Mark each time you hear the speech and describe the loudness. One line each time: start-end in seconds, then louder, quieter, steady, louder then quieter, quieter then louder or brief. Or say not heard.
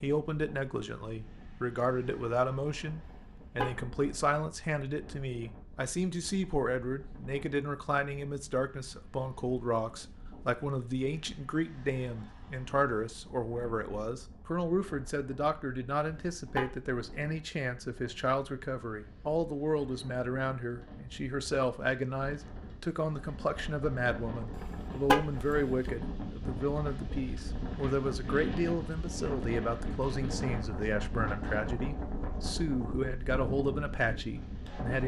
0.0-35.0 steady.